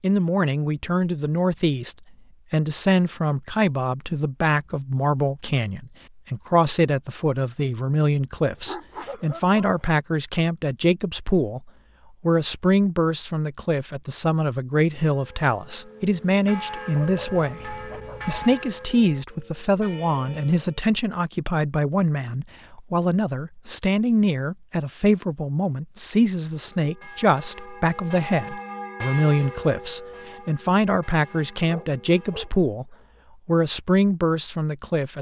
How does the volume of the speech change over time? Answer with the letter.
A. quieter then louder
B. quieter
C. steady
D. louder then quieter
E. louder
C.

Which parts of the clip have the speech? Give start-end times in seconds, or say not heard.
0.0-35.1.